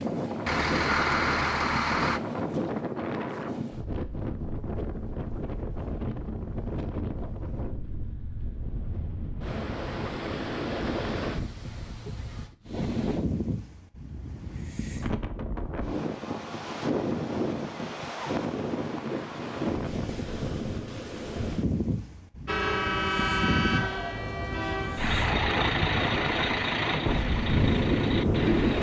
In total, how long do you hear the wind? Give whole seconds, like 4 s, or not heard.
29 s.